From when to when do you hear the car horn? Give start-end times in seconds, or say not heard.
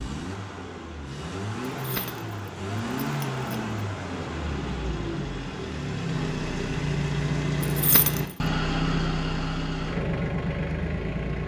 not heard.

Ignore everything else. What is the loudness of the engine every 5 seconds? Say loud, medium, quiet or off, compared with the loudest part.
medium, loud, loud.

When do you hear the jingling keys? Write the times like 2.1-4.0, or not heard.
1.7-3.9, 7.6-8.2.